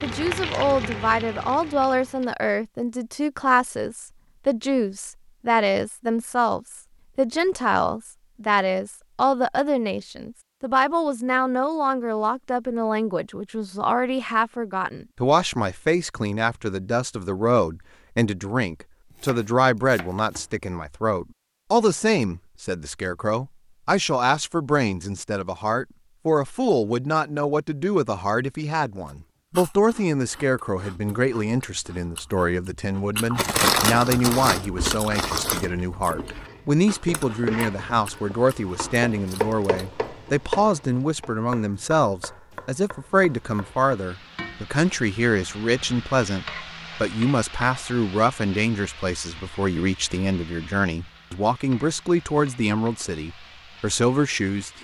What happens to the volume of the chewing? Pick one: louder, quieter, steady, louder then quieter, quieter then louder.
louder then quieter.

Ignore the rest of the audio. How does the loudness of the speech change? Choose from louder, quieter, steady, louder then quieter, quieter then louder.
steady.